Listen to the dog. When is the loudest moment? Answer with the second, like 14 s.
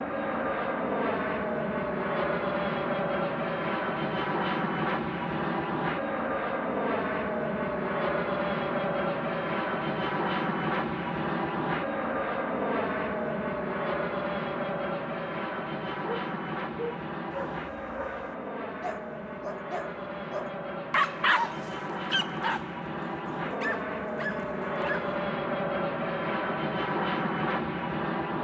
21 s.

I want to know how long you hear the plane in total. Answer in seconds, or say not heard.
28 s.